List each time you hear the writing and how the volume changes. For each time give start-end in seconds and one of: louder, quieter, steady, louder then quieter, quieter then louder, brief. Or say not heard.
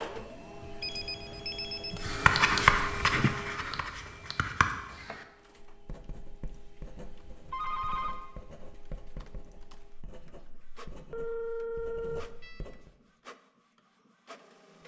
2.0-12.9 quieter.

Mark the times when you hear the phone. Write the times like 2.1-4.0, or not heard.
0.8-2.0, 7.5-8.2, 11.1-12.7.